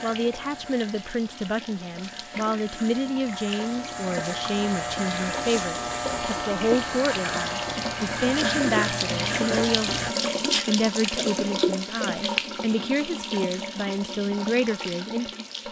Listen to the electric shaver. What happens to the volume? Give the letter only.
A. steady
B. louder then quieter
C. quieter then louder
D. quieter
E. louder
E.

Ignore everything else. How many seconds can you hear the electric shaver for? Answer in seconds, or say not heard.
10 s.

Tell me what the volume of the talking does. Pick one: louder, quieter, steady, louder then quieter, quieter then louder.
steady.